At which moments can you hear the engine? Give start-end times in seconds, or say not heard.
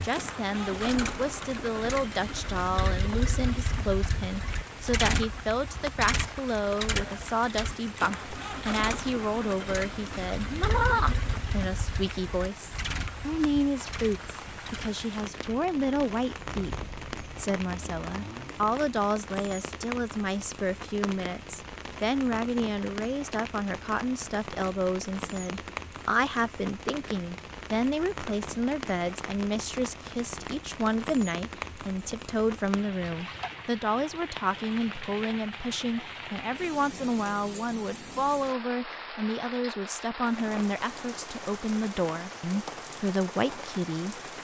0.1-18.6.